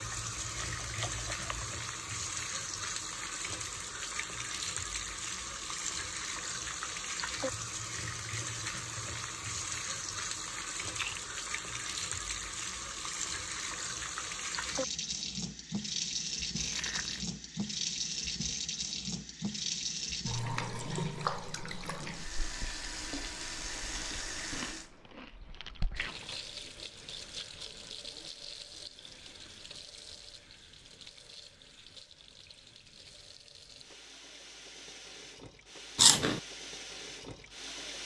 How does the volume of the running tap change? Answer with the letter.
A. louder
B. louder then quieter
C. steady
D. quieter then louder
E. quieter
E.